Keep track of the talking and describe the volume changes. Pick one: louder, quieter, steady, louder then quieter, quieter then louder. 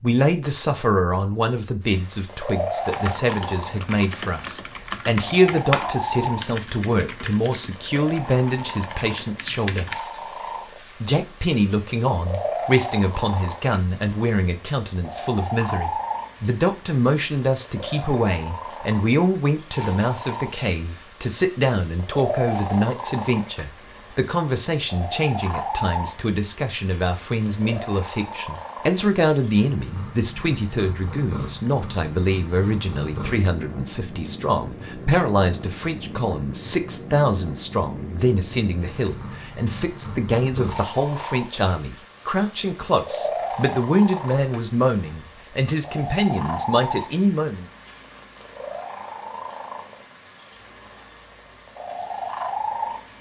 steady.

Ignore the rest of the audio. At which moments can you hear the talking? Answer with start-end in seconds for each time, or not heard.
0.0-9.9, 11.0-47.6.